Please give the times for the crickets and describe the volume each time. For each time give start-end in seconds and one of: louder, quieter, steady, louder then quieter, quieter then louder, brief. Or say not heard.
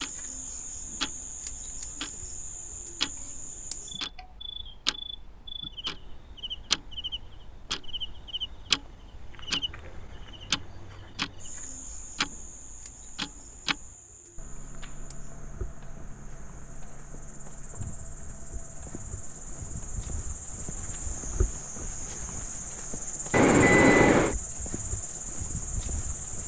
0.0-26.4 quieter then louder.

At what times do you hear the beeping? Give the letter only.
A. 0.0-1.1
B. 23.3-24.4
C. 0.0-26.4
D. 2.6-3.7
B.